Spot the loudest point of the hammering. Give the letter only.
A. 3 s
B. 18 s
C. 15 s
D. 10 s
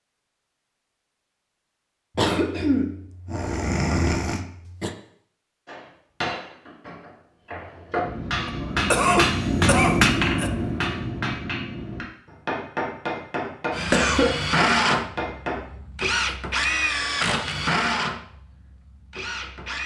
D.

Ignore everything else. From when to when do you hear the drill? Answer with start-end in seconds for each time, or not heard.
13.7-19.8.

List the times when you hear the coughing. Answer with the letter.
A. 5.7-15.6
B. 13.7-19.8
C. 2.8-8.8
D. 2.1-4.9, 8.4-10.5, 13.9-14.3
D.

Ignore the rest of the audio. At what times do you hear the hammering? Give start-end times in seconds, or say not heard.
5.7-15.6.